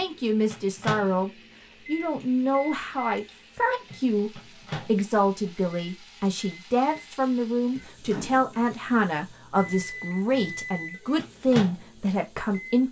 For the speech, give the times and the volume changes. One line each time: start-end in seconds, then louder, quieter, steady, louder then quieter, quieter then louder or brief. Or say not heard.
0.0-12.8 steady.